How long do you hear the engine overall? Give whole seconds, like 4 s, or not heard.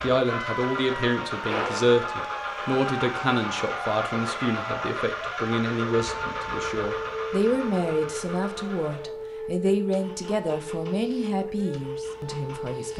13 s.